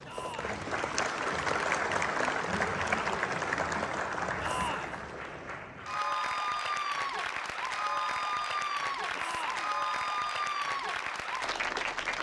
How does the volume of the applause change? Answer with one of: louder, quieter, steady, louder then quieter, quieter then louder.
steady.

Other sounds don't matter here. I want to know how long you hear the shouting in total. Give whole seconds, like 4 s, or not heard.
2 s.